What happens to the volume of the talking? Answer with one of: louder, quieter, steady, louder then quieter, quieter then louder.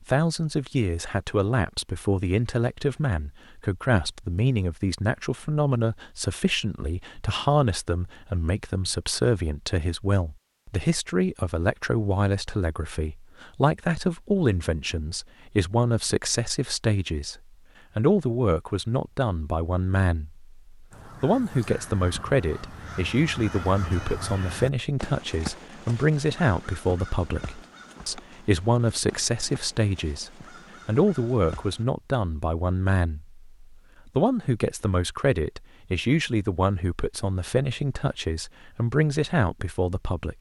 steady.